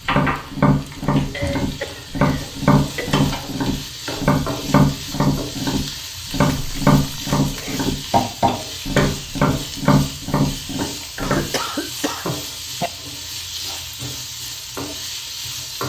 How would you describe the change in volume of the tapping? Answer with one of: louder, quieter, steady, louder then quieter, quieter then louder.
steady.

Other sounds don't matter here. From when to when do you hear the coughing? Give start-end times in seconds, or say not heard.
1.3-3.2, 6.5-8.0, 11.2-12.9.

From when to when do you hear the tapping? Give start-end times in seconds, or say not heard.
0.0-11.4.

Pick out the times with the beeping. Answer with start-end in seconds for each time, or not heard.
not heard.